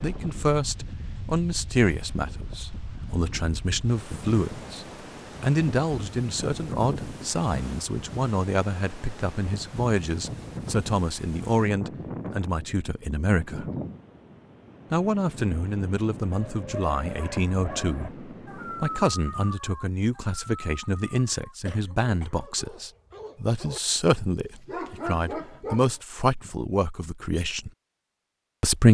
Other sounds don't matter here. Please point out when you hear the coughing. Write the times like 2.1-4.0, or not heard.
21.6-22.4.